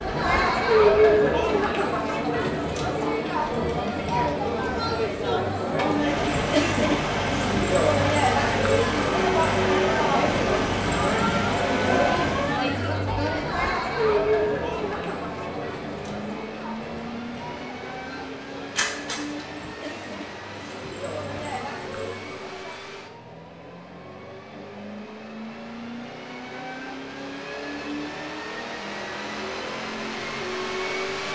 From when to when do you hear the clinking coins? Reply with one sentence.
You can hear the clinking coins from 18.8 to 19.4 s.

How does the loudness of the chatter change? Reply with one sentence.
The volume of the chatter goes down.